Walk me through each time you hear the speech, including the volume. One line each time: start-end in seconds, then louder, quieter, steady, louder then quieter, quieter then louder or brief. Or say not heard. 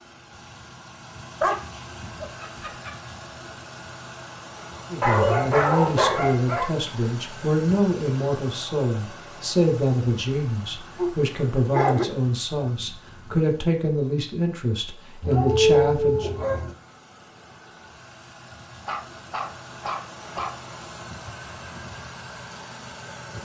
4.9-16.3 steady.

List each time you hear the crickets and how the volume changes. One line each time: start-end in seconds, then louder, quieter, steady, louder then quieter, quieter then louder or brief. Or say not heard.
not heard.